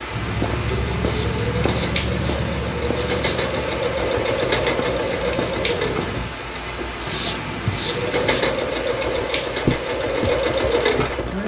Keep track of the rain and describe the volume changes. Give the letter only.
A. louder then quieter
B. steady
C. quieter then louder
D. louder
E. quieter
B.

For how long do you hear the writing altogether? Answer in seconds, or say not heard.
4 s.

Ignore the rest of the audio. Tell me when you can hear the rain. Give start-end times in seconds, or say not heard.
0.0-11.4.